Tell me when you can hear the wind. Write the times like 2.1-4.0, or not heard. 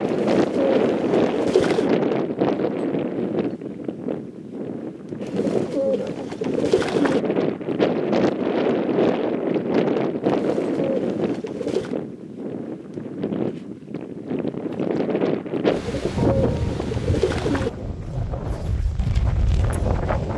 0.0-20.3.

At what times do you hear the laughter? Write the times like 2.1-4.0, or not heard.
not heard.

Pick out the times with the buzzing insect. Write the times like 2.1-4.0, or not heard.
not heard.